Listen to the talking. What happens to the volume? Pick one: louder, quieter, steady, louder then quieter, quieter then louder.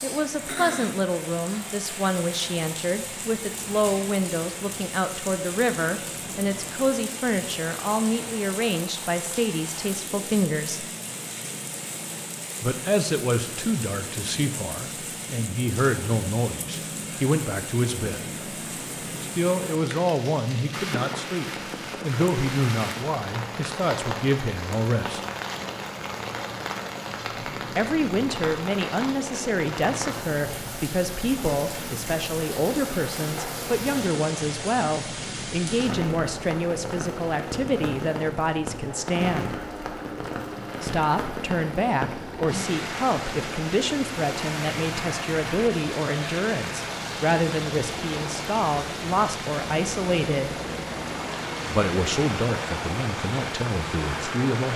steady.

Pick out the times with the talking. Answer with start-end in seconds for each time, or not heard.
0.0-10.8, 12.6-18.4, 19.2-25.2, 27.8-39.5, 40.8-50.6, 51.6-54.7.